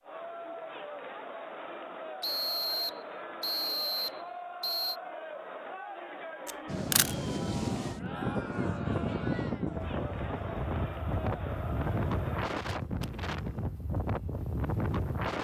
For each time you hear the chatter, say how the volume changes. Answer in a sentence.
You can hear the chatter from 0.0 to 12.4 s, at a steady volume.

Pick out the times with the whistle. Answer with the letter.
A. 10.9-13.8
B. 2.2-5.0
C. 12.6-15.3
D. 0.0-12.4
B.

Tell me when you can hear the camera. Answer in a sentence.
The camera can be heard from 6.5 to 7.2 s.